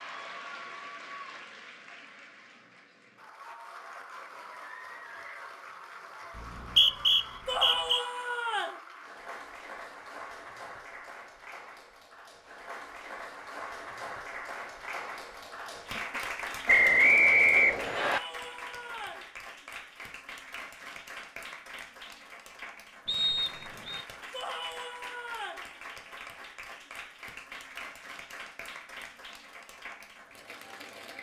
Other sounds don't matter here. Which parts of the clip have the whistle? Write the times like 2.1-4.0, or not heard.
6.3-8.0, 16.6-18.2, 23.1-24.1.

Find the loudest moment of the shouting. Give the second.
8 s.